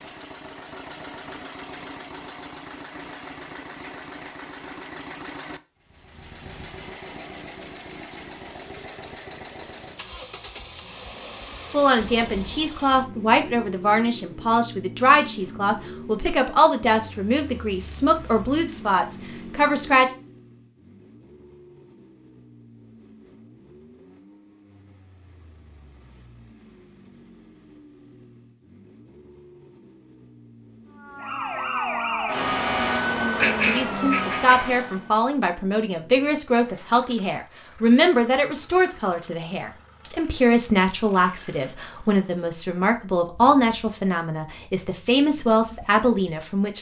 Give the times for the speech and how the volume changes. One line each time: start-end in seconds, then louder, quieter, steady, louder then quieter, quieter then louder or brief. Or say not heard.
11.7-20.1 steady
33.7-46.7 steady.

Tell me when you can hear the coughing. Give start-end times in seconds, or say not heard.
33.4-34.5.